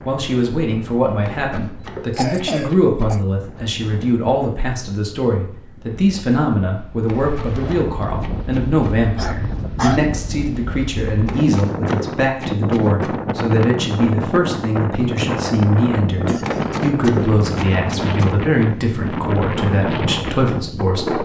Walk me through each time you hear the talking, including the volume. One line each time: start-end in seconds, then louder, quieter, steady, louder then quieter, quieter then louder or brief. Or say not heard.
0.1-21.1 steady.